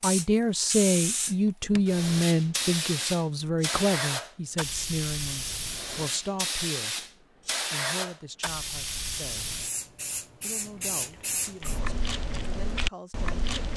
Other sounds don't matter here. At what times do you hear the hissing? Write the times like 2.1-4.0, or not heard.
0.0-11.8.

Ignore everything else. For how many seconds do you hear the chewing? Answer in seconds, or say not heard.
2 s.